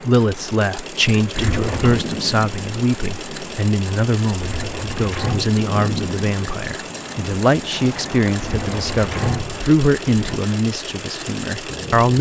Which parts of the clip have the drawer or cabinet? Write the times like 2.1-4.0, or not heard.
1.3-2.0, 4.4-5.5, 8.3-10.4.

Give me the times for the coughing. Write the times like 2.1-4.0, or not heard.
not heard.